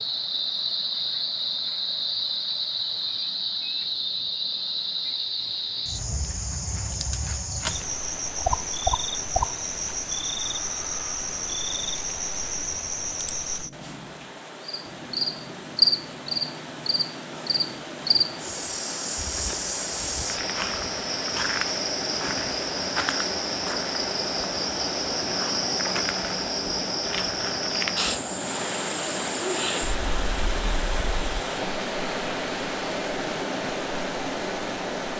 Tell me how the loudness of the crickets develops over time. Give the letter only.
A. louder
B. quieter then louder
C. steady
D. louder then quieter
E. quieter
C.